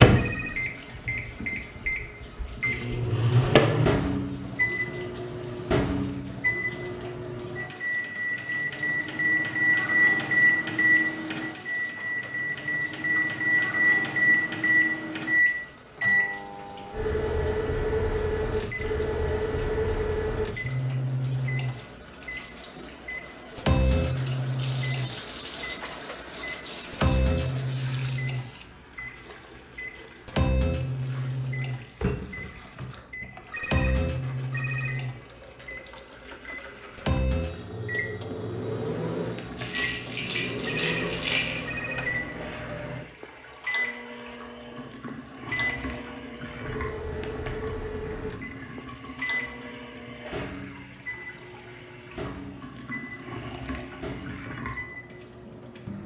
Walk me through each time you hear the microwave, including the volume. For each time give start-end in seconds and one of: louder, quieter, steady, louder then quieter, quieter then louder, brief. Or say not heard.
0.0-56.0 quieter.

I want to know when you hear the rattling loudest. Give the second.
41 s.